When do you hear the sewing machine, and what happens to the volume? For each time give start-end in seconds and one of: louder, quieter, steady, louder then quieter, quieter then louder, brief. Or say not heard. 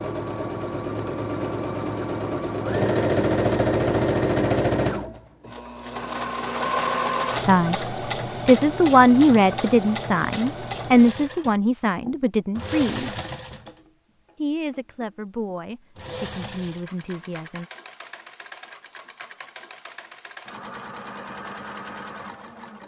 0.0-22.8 quieter.